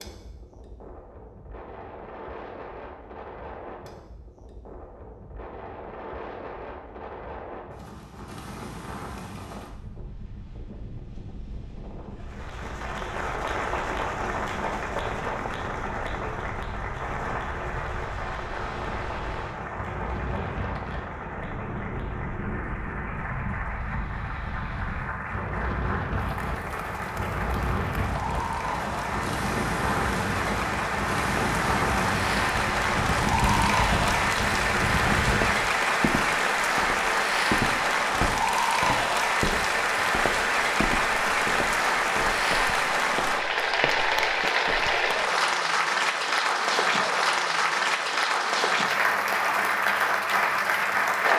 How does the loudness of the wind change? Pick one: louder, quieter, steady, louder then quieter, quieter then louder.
louder.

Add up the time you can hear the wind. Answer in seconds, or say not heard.
36 s.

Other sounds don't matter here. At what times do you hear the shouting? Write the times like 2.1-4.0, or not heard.
not heard.